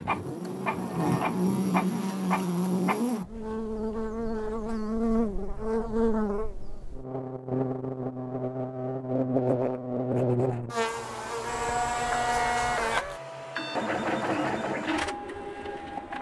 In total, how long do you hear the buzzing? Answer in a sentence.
The buzzing can be heard for 13 seconds in total.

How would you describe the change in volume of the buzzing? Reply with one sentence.
The volume of the buzzing stays about the same.